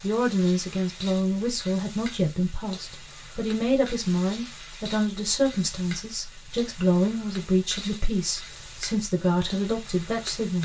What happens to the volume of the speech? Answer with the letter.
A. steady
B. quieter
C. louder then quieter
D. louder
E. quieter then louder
A.